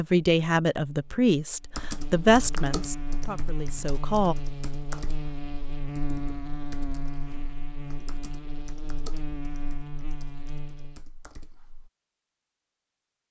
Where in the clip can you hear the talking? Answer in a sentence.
You can hear the talking from 0.0 to 4.3 s.